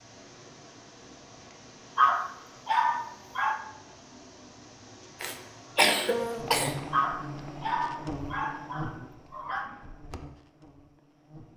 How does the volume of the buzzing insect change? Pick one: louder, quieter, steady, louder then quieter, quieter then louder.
quieter.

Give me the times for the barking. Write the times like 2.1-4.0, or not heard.
1.9-3.6, 6.9-9.7.